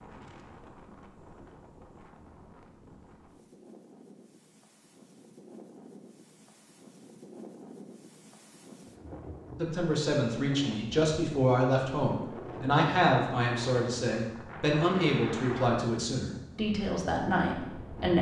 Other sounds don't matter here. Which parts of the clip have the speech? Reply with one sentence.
The speech can be heard from 9.6 to 18.1 s.